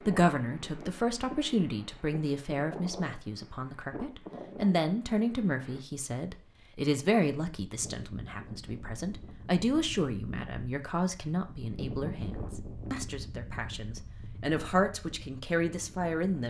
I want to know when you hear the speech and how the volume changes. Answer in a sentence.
The speech can be heard from 0.0 to 16.4 s, at a steady volume.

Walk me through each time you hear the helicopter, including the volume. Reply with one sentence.
The helicopter can't be heard in this clip.